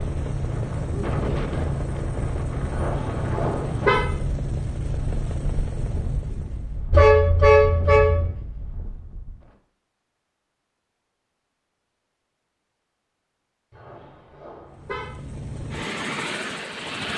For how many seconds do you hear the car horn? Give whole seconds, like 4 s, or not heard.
4 s.